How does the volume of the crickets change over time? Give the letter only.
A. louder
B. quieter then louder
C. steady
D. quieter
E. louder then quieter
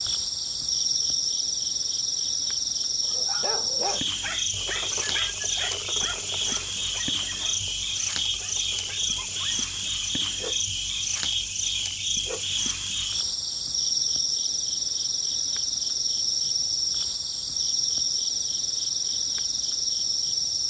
C.